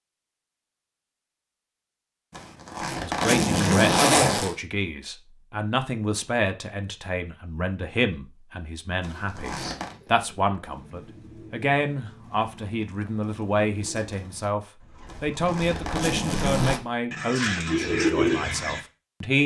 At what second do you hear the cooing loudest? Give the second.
18 s.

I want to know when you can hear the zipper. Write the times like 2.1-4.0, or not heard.
2.4-4.5, 9.0-9.9, 15.1-16.8.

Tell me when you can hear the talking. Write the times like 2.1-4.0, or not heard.
3.0-19.4.